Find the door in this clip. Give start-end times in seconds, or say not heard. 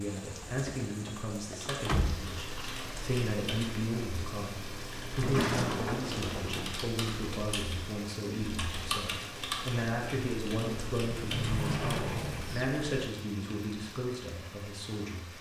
0.3-2.2, 5.2-6.7, 11.2-12.7.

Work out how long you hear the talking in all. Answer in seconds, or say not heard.
15 s.